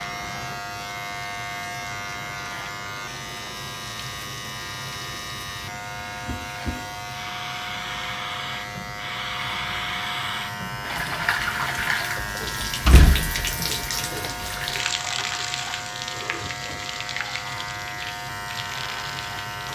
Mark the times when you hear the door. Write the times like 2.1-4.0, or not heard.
12.4-14.3.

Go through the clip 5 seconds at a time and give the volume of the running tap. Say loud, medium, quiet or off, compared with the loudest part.
quiet, medium, loud, medium.